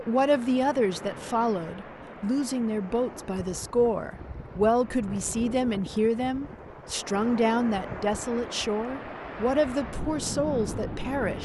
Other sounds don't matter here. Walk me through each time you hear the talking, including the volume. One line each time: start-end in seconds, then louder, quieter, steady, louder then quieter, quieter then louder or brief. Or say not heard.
0.0-11.4 steady.